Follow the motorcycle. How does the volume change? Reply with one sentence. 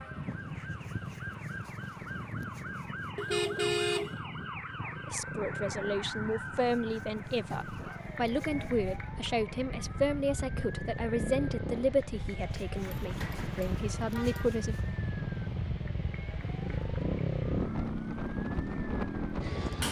The volume of the motorcycle goes up.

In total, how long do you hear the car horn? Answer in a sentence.
The car horn can be heard for 3 seconds in total.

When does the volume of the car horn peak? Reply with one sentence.
The loudest moment of the car horn is at 4 seconds.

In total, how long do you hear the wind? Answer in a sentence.
You can hear the wind for 20 seconds altogether.